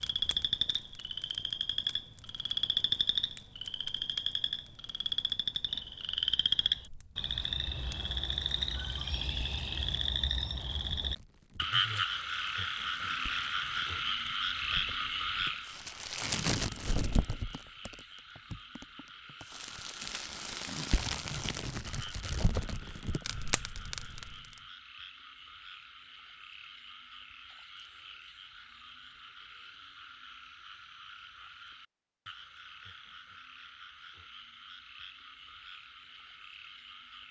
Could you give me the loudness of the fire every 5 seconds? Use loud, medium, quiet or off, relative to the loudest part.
quiet, quiet, quiet, loud, loud, off, off, off.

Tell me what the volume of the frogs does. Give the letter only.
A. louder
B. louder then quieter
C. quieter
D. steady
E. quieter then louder
C.